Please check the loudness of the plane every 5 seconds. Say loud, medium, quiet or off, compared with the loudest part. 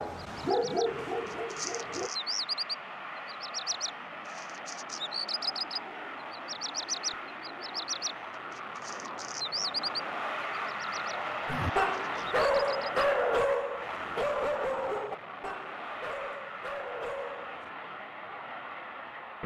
medium, medium, loud, medium.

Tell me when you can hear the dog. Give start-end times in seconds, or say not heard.
0.0-2.1, 11.4-17.7.